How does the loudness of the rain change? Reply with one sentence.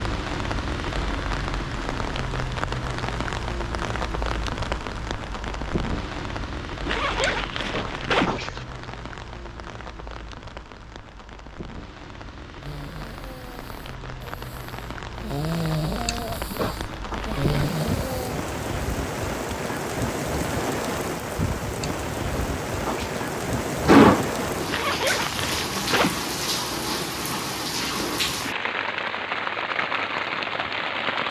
The volume of the rain goes down, then up.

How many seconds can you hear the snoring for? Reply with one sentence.
You can hear the snoring for 6 seconds altogether.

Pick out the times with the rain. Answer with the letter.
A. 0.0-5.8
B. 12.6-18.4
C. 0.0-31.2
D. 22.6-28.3
C.